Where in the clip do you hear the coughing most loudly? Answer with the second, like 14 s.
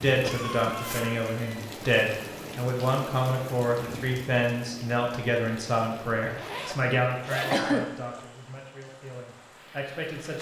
8 s.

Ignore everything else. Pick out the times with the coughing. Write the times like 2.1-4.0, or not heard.
0.2-1.6, 7.5-8.0.